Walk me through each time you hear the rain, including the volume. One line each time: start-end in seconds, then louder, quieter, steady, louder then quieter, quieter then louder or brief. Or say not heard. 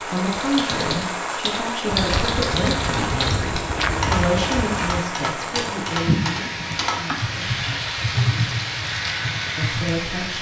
0.0-10.3 steady.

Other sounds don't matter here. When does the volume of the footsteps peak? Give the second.
4 s.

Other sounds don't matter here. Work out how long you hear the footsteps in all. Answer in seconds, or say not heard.
3 s.